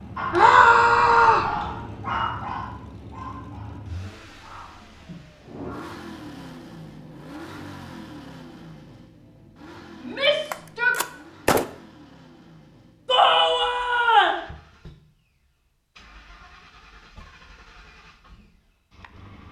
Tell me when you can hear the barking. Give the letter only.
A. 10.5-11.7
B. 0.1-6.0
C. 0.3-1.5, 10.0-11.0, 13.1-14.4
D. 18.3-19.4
B.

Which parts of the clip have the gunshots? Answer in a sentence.
The gunshots can be heard from 10.5 to 11.7 s.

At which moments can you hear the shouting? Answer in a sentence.
The shouting can be heard from 0.3 to 1.5 s, from 10.0 to 11.0 s and from 13.1 to 14.4 s.